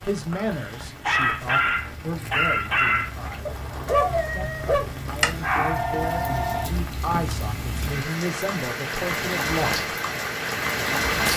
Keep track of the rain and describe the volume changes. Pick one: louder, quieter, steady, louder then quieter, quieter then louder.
louder.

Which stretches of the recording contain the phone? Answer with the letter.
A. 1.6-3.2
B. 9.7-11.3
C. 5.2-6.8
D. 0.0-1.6
C.